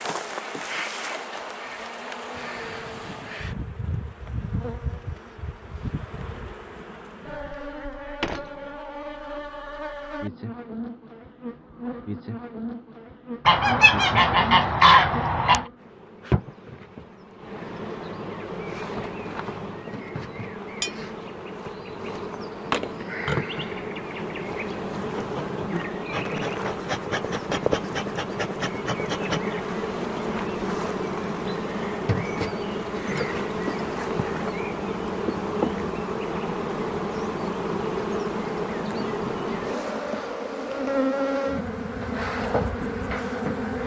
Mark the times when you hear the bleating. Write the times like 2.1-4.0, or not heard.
not heard.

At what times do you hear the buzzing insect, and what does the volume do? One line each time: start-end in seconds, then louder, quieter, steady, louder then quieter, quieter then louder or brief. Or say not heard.
0.0-43.8 louder.